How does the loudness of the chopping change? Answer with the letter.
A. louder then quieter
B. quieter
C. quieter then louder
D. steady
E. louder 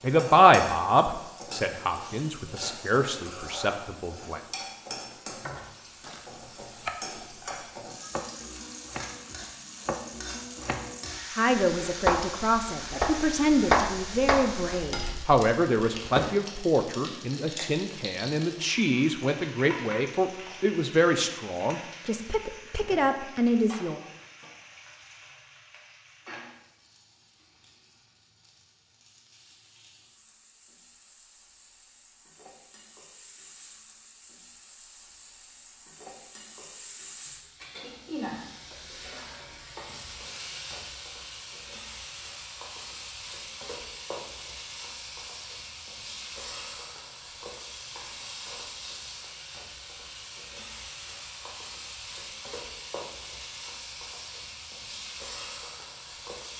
E.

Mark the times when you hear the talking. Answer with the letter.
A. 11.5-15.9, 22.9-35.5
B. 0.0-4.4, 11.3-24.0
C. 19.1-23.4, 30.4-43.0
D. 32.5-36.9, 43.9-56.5
B.